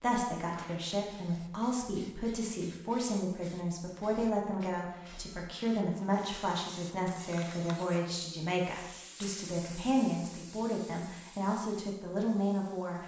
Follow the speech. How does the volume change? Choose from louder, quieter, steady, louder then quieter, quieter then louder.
steady.